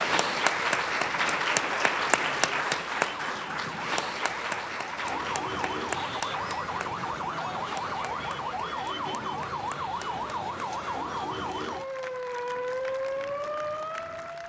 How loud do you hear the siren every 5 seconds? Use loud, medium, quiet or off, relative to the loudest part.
medium, loud, loud.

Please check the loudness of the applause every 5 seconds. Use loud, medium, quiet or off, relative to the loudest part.
loud, medium, quiet.